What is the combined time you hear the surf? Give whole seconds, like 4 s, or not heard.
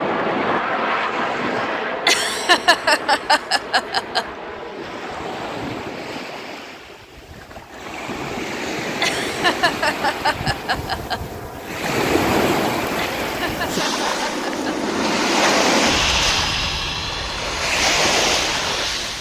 19 s.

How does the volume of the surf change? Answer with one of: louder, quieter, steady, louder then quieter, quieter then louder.
louder.